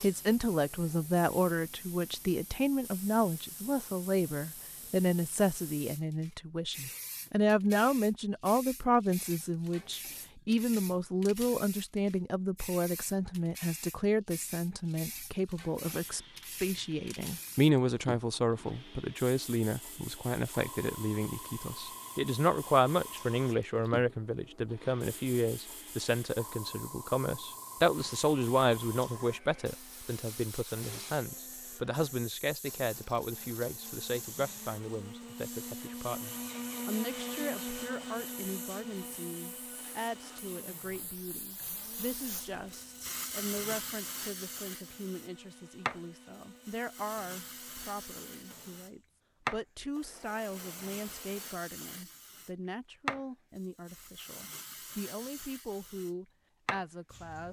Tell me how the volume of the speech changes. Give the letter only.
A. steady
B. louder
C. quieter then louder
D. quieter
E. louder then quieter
D.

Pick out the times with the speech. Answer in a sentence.
The speech can be heard from 0.0 to 57.4 s.